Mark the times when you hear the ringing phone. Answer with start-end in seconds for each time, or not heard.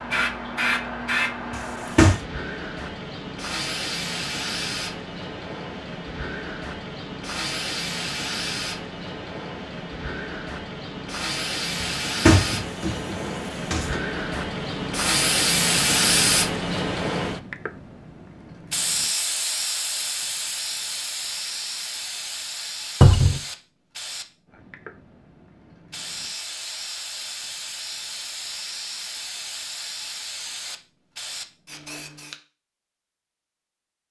not heard.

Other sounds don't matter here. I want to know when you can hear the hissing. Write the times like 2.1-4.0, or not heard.
0.0-32.4.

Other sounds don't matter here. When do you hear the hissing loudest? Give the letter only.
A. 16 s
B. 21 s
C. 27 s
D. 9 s
A.